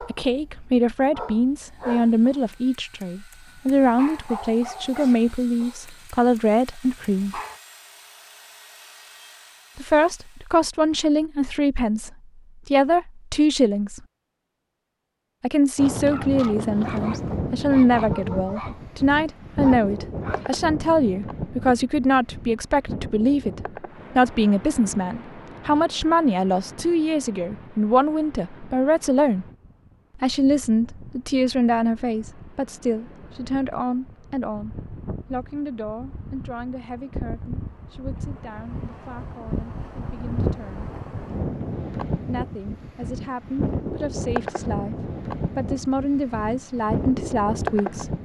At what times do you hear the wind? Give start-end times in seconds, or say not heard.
15.8-48.2.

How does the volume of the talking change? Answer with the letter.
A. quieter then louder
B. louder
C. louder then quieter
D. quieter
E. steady
D.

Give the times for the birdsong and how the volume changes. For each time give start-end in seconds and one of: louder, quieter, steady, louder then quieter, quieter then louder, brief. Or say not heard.
not heard.